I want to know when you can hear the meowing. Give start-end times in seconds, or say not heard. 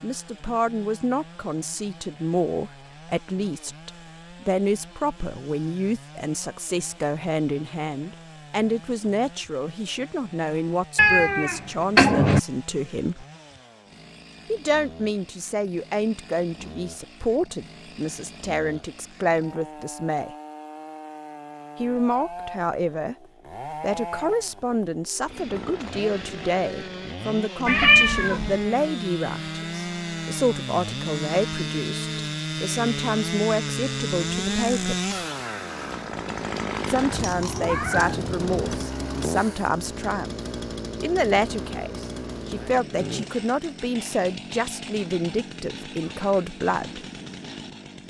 10.9-12.4, 27.6-28.6, 37.1-38.8.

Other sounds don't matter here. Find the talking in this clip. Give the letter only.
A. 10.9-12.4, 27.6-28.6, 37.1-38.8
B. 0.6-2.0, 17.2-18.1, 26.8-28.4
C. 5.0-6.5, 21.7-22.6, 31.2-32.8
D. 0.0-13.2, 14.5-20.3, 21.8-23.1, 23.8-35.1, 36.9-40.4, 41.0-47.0
D.